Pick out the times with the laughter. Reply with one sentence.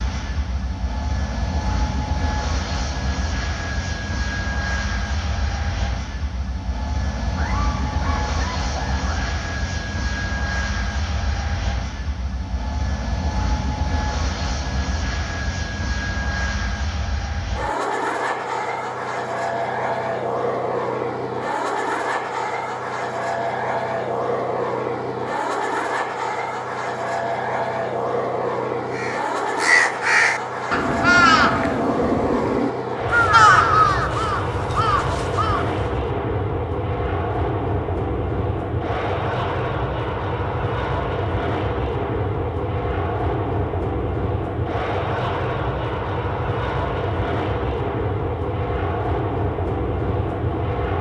You can hear the laughter from 7.3 to 9.3 s.